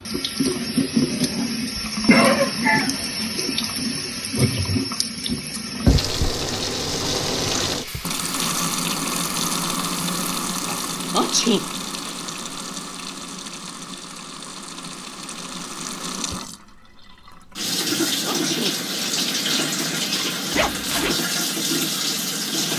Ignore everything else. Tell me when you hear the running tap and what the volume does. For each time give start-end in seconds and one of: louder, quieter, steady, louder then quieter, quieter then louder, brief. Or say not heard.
0.0-22.7 quieter then louder.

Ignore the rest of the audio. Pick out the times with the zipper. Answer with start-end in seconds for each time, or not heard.
20.5-21.1.